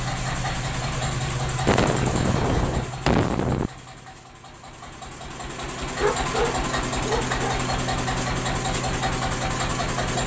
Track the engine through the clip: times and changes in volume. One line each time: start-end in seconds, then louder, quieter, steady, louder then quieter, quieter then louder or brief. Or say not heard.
0.0-10.2 quieter then louder.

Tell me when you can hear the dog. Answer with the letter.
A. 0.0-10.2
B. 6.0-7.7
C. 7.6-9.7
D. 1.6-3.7
B.